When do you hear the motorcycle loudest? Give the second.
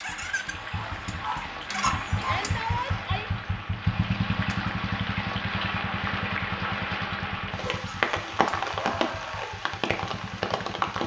4 s.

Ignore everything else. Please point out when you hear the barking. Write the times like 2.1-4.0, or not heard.
0.7-2.5, 7.5-9.6.